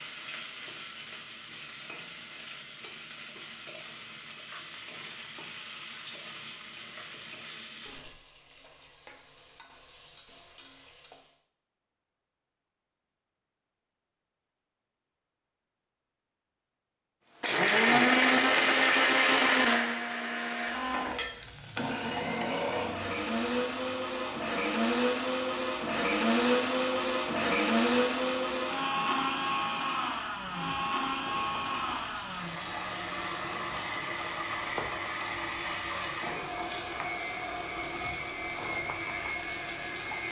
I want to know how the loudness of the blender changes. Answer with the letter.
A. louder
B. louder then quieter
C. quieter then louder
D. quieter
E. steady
D.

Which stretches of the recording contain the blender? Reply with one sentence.
You can hear the blender from 17.4 to 40.2 s.